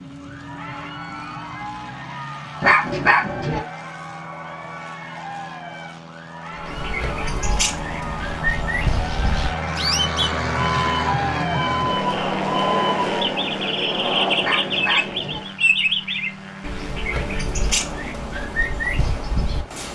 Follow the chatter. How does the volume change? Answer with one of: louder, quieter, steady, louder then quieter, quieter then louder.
louder.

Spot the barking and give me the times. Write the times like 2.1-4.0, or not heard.
2.6-3.6, 14.4-15.4.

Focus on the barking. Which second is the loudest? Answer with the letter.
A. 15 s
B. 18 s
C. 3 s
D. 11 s
C.